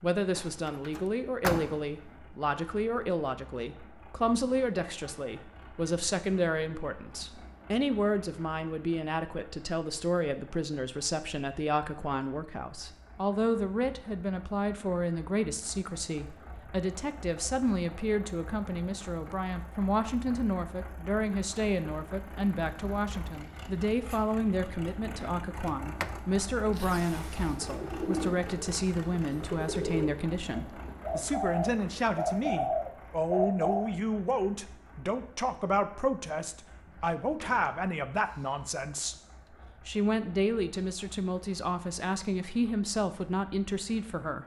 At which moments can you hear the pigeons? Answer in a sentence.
You can hear the pigeons from 27.4 to 33.9 s.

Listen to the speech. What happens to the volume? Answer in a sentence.
The volume of the speech stays about the same.